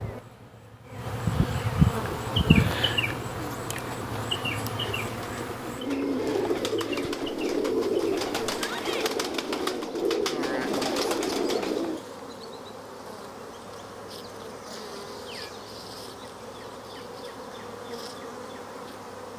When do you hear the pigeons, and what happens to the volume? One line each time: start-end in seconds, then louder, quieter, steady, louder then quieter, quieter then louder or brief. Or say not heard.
2.1-12.0 louder.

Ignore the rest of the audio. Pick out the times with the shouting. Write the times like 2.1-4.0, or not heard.
8.6-9.1.